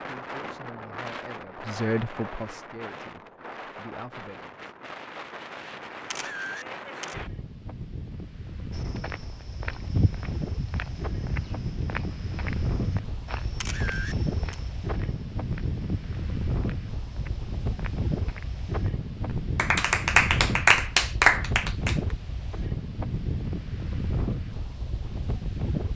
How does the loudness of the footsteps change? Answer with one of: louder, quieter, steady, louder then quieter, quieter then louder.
quieter.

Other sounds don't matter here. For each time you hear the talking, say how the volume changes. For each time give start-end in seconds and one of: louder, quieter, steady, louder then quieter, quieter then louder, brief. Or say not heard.
0.1-4.7 louder then quieter.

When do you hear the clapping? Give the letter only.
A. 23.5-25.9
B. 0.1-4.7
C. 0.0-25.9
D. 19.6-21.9
D.